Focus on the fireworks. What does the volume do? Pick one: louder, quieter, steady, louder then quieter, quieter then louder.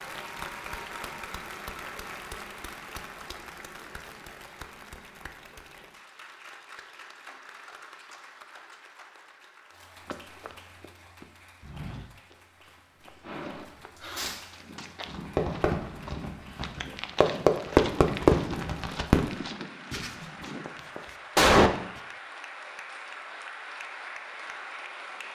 louder then quieter.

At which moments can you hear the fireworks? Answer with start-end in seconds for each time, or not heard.
13.2-21.7.